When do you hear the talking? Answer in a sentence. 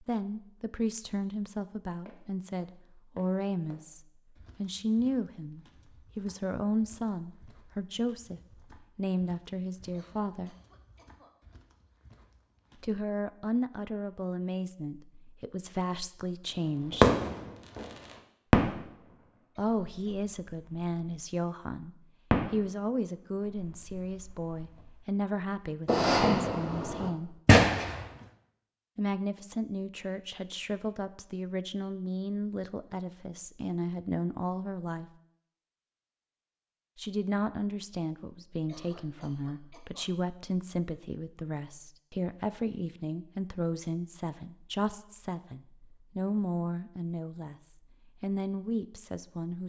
The talking can be heard from 0.1 to 10.6 s, from 12.8 to 17.1 s, from 19.6 to 27.4 s, from 28.9 to 35.1 s, from 37.0 to 47.5 s and from 48.2 to 49.6 s.